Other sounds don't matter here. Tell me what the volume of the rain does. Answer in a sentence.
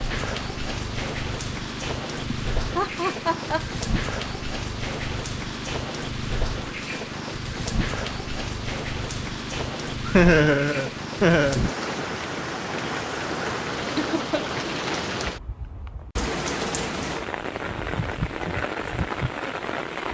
The loudness of the rain stays about the same.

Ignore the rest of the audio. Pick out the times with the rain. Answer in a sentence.
You can hear the rain from 0.0 to 20.0 s.